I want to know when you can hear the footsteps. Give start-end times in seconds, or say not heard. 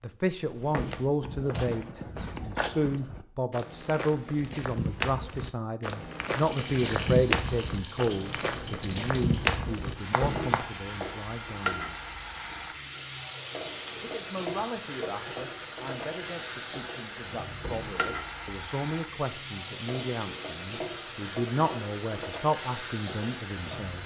0.5-10.7.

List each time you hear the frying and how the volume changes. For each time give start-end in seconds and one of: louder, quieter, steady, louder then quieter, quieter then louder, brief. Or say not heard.
6.2-24.0 steady.